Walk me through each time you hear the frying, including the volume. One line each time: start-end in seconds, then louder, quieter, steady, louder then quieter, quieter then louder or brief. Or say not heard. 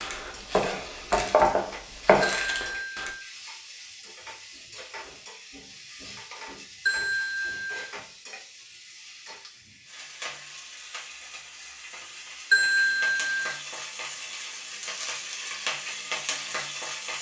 0.1-17.1 louder.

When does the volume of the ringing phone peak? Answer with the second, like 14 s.
13 s.